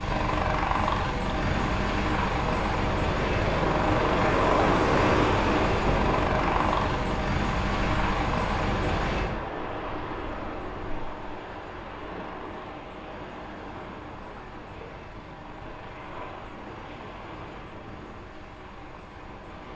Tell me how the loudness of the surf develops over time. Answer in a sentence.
The volume of the surf goes down.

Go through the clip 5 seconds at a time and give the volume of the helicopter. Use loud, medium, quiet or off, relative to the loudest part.
loud, loud, quiet, quiet.